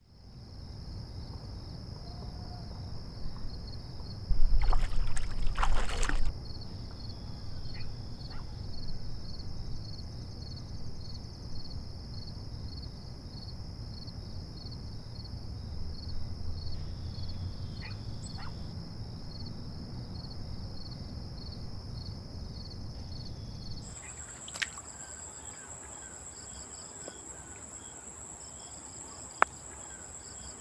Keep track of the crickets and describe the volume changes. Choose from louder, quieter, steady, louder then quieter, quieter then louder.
louder.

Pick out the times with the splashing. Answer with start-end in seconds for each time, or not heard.
4.3-6.3.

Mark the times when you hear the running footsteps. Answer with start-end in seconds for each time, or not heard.
not heard.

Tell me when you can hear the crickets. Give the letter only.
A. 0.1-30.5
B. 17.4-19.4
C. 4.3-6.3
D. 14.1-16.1
A.